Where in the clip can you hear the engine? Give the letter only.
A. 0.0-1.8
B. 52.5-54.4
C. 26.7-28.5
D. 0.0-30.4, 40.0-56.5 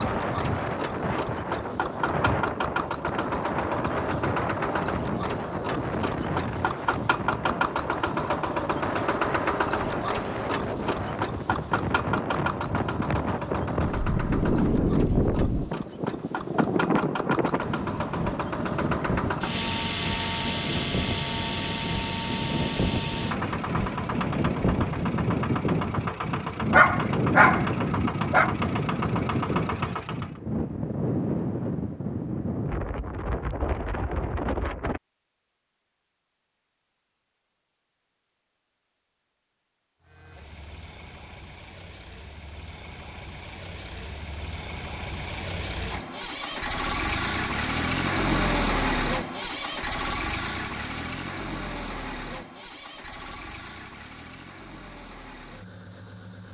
D.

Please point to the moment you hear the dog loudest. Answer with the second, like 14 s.
27 s.